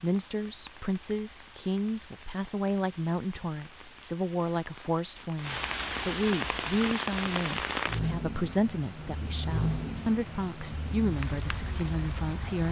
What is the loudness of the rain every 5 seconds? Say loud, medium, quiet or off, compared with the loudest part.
quiet, loud, medium.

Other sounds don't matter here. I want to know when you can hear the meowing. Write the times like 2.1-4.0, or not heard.
not heard.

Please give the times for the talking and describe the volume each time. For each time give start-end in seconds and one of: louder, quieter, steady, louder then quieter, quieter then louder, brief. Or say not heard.
0.0-12.6 steady.